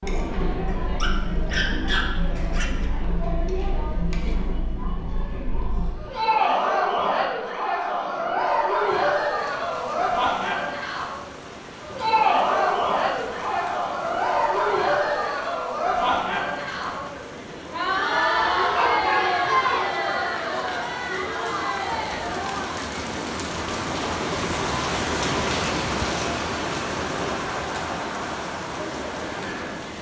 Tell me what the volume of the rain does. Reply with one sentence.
The loudness of the rain goes up.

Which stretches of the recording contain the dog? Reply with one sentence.
The dog can be heard from 0.7 to 2.9 s and from 18.4 to 19.9 s.